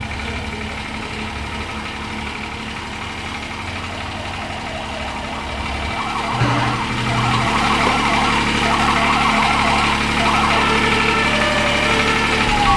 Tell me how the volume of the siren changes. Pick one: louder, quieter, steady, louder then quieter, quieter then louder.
louder.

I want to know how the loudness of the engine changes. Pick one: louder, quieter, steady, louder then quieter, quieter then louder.
louder.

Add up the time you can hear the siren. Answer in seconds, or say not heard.
13 s.